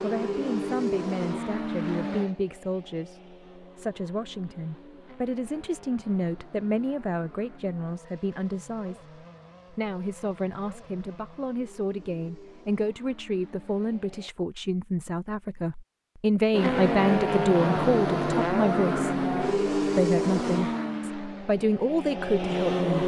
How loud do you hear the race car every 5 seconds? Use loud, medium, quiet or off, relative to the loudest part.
medium, quiet, quiet, loud, loud.